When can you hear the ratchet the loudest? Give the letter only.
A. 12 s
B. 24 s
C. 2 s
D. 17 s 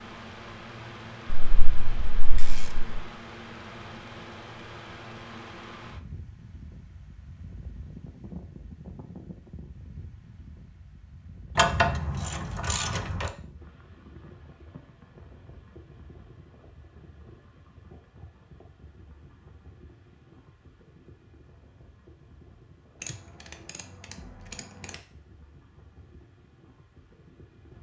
A.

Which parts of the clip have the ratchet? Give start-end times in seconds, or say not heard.
1.4-3.0, 11.6-13.3, 23.0-24.9.